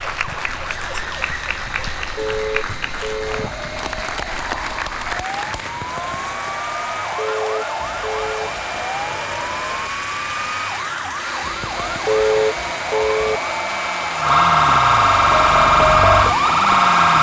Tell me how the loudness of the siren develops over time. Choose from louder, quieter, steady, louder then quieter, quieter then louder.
louder.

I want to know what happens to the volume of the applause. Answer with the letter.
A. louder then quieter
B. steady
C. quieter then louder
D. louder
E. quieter
B.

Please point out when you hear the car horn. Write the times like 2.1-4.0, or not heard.
2.1-3.5, 7.2-8.5, 12.1-13.4.